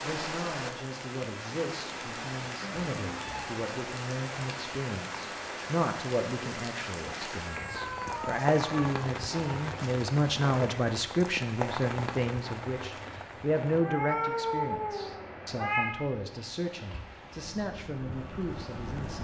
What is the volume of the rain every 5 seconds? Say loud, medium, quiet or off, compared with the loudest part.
loud, loud, loud, medium.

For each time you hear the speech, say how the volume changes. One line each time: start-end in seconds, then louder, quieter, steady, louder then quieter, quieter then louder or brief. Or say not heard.
0.0-19.1 louder then quieter.